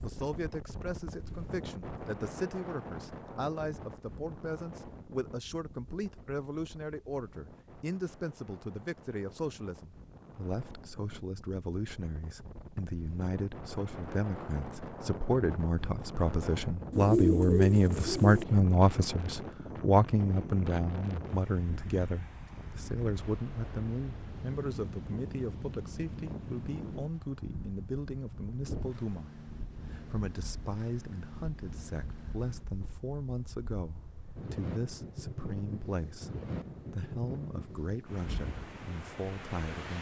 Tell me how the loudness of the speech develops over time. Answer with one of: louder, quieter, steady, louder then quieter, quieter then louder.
louder then quieter.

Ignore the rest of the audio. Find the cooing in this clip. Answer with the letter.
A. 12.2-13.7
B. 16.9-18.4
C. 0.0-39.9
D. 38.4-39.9
B.